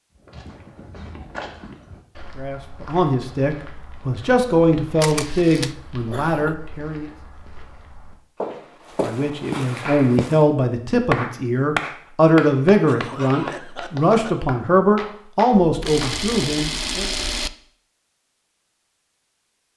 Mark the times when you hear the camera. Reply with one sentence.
You can hear the camera from 5.0 to 5.8 s and from 15.6 to 17.5 s.